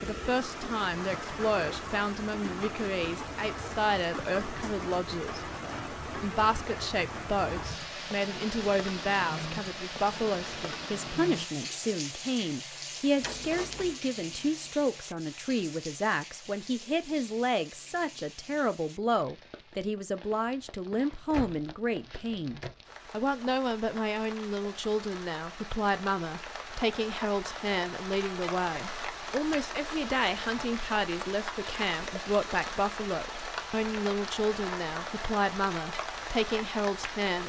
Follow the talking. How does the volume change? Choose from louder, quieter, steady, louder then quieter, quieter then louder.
steady.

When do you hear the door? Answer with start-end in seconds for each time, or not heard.
13.2-13.9, 21.3-22.8.